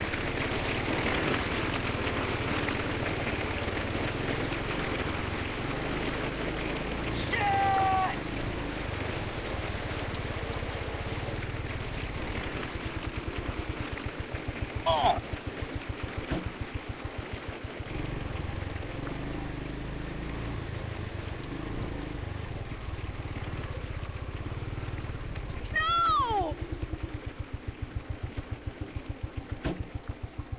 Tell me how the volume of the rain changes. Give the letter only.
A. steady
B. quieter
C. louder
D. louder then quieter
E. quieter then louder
B.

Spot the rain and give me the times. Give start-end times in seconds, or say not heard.
0.0-30.5.